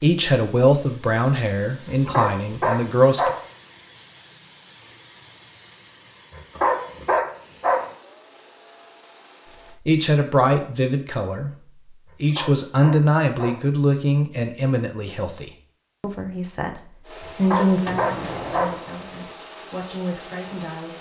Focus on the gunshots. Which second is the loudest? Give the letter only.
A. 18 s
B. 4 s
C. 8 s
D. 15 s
A.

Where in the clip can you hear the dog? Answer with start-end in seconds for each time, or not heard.
1.9-3.4, 6.3-7.8, 12.1-13.6, 17.2-18.8.